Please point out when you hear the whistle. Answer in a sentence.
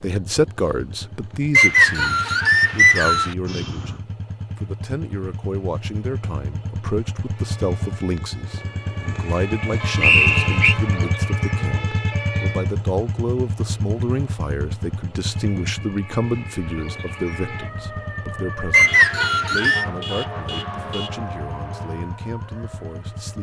The whistle can be heard from 1.5 to 3.4 s, from 10.0 to 10.8 s and from 18.7 to 19.9 s.